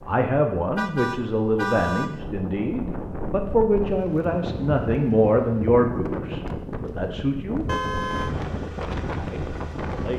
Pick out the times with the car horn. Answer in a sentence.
The car horn can be heard from 0.8 to 2.1 s and from 7.7 to 8.3 s.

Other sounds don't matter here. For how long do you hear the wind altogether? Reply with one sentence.
The wind can be heard for 10 seconds in total.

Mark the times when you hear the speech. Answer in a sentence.
You can hear the speech from 0.1 to 7.7 s and from 9.2 to 10.1 s.